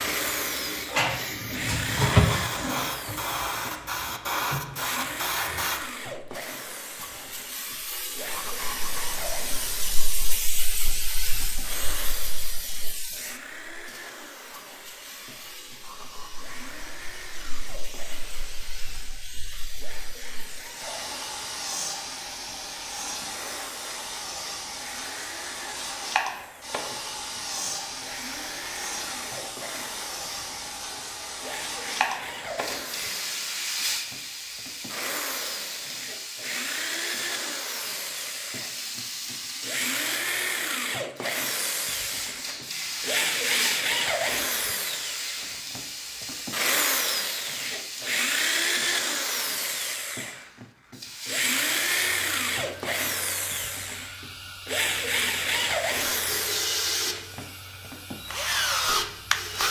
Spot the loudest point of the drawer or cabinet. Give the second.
2 s.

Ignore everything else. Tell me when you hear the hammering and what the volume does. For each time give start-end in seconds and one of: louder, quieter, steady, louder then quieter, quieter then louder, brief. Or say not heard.
not heard.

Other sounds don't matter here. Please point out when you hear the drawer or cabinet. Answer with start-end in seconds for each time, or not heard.
0.8-2.2.